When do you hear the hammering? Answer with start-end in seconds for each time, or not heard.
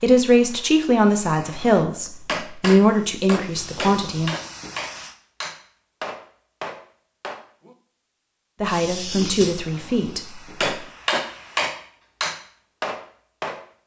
2.2-7.8, 10.6-13.7.